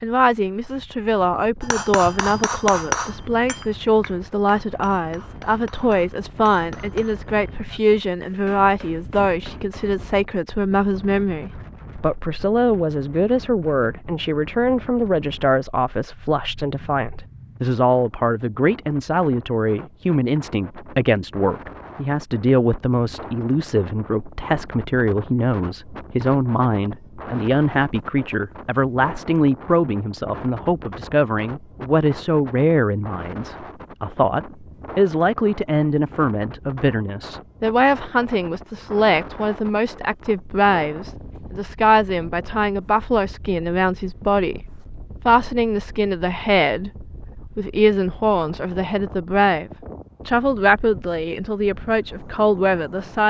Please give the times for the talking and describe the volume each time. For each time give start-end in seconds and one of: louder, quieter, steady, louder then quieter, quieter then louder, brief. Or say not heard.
0.0-53.2 steady.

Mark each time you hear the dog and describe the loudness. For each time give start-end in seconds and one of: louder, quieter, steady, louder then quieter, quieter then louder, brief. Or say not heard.
not heard.